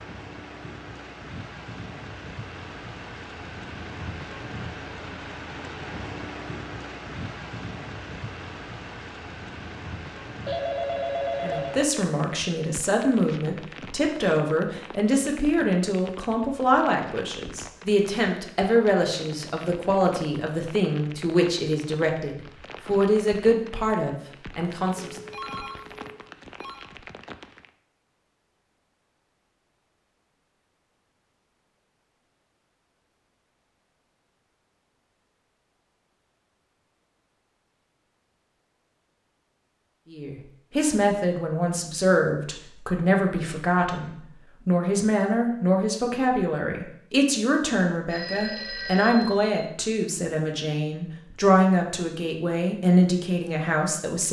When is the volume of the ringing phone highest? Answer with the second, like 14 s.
11 s.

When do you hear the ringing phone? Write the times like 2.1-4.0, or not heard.
10.4-11.8, 25.1-26.9, 48.1-49.5.